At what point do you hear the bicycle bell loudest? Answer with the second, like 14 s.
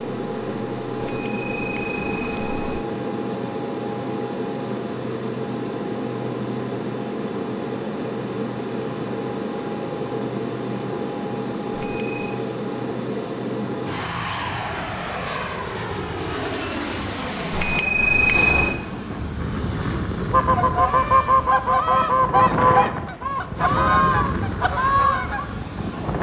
18 s.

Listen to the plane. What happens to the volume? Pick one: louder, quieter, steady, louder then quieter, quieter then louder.
steady.